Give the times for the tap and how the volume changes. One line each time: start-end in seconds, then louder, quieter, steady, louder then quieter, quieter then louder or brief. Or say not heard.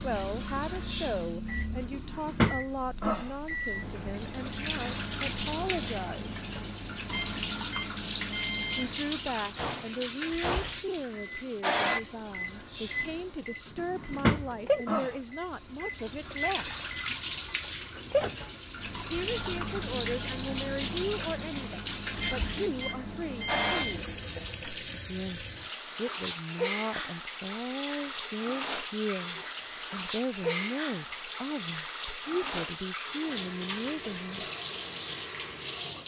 0.0-36.0 steady.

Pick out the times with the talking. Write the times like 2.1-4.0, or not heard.
0.0-6.3, 8.8-16.8, 19.1-24.0, 25.1-34.5.